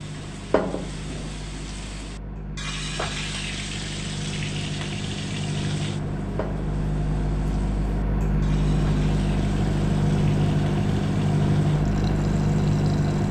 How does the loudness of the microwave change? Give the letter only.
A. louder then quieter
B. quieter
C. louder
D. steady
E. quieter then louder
C.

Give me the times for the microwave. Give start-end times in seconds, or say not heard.
0.0-13.2.